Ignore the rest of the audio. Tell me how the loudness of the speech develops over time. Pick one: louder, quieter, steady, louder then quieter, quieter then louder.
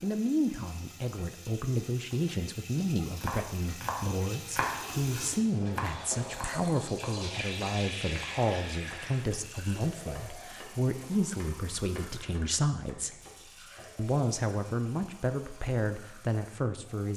steady.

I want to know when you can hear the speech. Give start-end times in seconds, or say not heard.
0.0-13.2, 13.9-17.1.